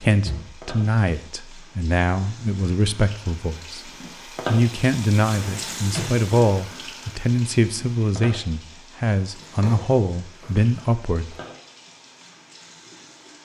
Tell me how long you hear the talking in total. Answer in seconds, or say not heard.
11 s.